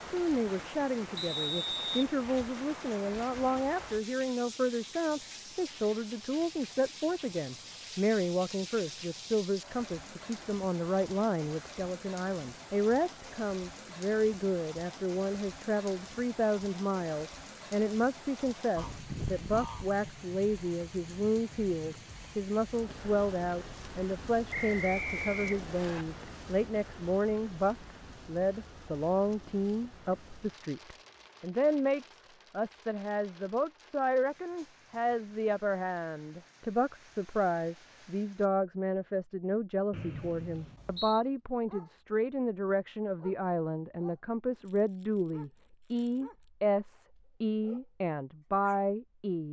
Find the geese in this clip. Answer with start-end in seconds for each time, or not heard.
18.8-19.9.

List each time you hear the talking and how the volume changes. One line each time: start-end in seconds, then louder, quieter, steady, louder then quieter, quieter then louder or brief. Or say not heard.
0.0-49.4 steady.